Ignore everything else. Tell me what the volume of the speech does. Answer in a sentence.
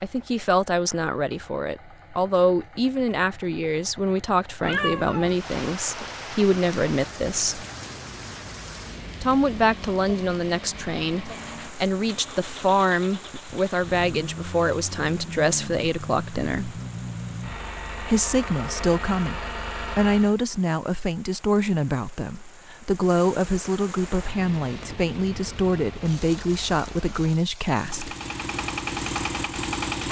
The loudness of the speech stays about the same.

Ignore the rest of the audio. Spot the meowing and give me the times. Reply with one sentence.
You can hear the meowing from 4.6 to 5.3 s.